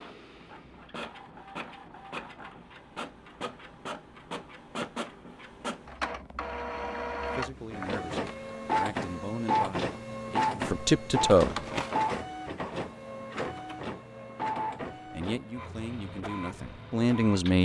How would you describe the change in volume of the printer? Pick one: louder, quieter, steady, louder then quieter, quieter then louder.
louder then quieter.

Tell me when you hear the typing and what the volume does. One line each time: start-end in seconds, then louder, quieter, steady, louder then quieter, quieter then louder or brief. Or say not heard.
not heard.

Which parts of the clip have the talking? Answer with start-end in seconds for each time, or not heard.
7.3-11.6, 15.1-17.6.